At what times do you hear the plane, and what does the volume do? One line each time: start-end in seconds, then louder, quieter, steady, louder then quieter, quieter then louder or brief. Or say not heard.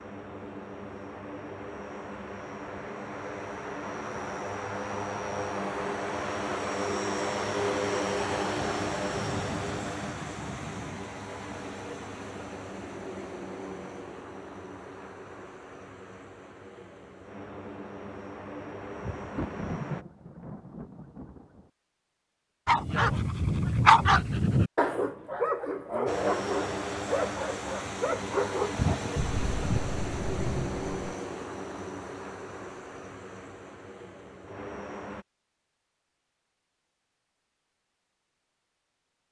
0.0-20.1 louder then quieter
26.1-35.2 quieter.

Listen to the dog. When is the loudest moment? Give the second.
24 s.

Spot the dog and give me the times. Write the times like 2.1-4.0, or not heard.
22.6-29.9.